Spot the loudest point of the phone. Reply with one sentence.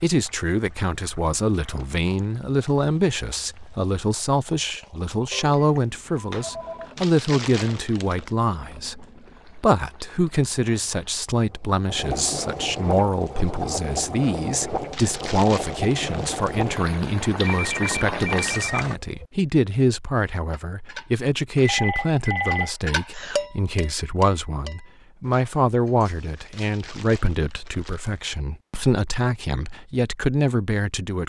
The loudest moment of the phone is at 22 seconds.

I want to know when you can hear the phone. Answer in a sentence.
The phone can be heard from 5.3 to 6.9 s, from 17.4 to 19.3 s and from 21.6 to 23.4 s.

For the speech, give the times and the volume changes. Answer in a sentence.
The speech can be heard from 0.0 to 31.2 s, at a steady volume.